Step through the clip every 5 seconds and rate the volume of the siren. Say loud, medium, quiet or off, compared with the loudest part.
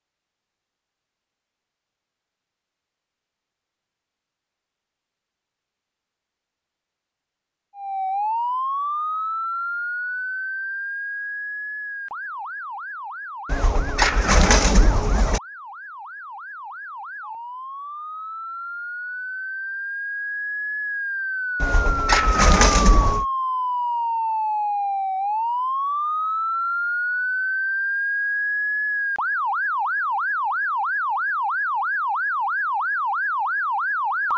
off, loud, medium, medium, loud, loud, loud.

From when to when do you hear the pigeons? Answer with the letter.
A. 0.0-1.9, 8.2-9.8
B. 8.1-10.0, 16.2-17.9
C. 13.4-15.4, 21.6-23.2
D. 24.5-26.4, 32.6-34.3
C.